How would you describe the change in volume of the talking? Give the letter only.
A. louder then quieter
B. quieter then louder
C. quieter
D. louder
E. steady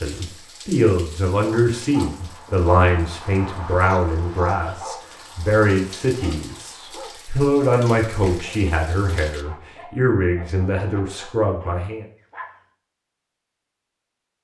E.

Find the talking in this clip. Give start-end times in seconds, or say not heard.
0.0-12.1.